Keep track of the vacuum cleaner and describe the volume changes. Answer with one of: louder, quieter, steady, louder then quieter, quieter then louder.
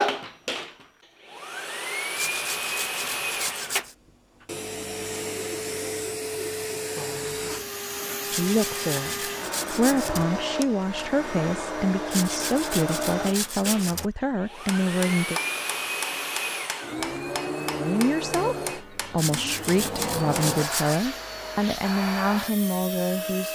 steady.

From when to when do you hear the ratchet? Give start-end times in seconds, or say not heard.
not heard.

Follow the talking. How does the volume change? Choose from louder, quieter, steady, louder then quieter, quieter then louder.
steady.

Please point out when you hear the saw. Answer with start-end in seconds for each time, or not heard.
2.1-4.0, 8.2-10.2, 12.1-14.1, 19.1-21.0.